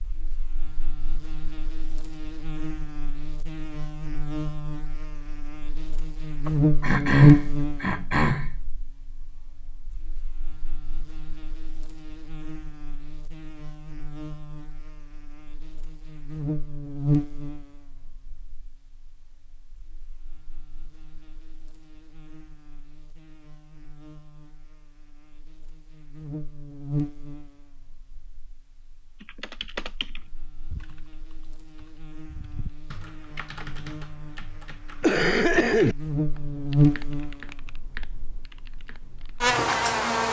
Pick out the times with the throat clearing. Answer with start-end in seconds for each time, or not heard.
6.5-8.5, 35.0-36.0.